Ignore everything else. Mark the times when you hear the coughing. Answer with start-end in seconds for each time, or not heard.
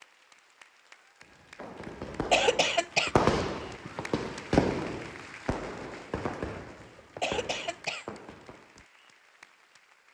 2.0-3.1, 7.2-8.2.